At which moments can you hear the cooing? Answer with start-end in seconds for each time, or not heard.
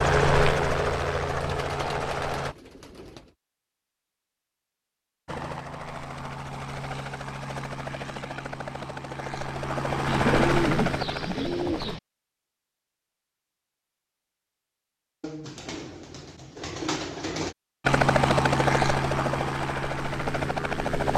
1.2-3.2, 10.1-12.0, 15.2-17.6.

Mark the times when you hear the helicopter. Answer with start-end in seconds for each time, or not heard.
0.0-2.5, 5.2-12.0, 17.9-21.1.